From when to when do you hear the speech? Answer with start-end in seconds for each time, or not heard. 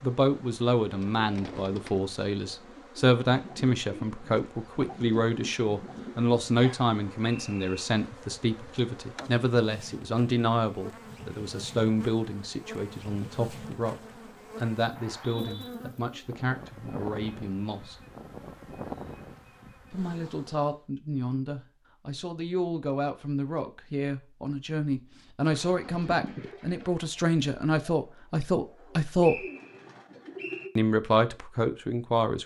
0.0-18.0, 19.9-29.4, 30.8-32.4.